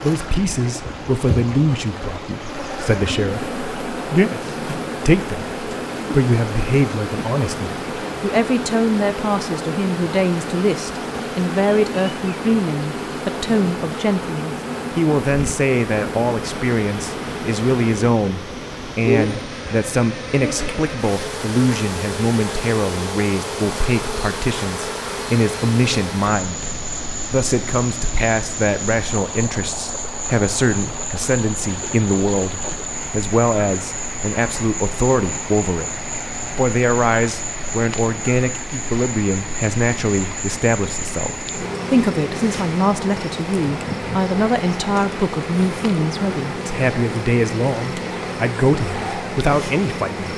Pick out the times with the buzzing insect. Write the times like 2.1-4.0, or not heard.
0.0-50.3.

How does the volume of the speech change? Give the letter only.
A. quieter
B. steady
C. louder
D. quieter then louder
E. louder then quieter
B.